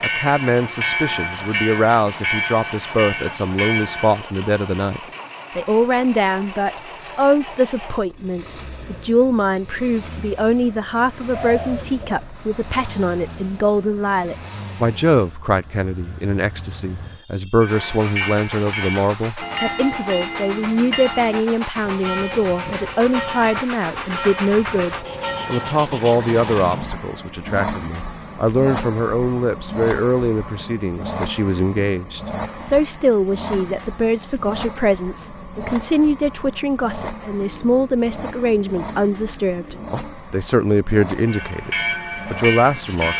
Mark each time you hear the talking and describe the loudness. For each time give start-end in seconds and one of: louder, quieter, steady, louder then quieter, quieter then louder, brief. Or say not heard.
0.0-43.1 steady.